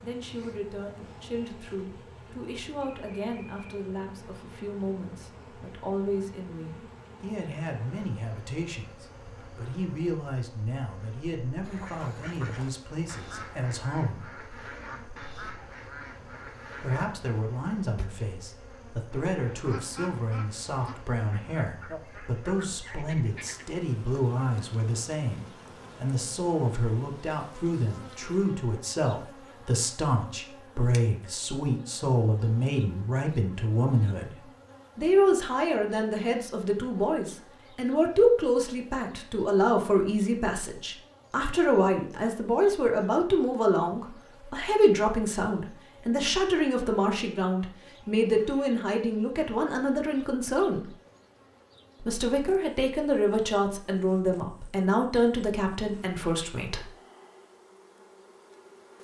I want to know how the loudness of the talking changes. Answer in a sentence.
The loudness of the talking goes up.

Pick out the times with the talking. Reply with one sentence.
The talking can be heard from 0.0 to 14.3 s, from 16.8 to 50.9 s and from 52.0 to 56.9 s.